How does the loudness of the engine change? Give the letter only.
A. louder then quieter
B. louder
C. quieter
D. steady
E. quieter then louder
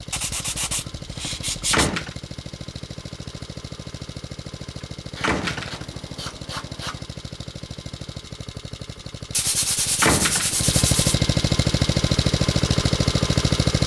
B.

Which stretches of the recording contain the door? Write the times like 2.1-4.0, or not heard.
1.7-2.1, 5.2-6.0, 10.0-10.8.